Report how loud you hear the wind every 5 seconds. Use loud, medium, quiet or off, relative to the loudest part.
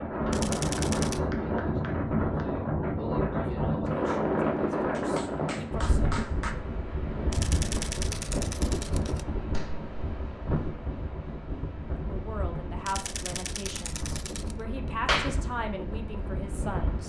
loud, medium, medium, medium.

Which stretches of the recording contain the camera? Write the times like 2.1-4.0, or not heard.
0.3-1.2, 7.3-9.2, 12.8-14.6.